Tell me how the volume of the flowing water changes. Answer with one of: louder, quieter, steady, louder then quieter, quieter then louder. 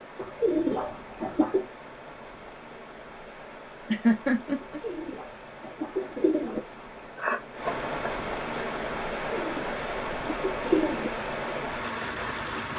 louder.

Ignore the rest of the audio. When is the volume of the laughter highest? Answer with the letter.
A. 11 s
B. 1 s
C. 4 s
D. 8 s
C.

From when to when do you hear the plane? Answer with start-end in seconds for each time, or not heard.
not heard.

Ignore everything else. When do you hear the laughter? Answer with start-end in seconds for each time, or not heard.
3.9-4.8, 7.2-8.7.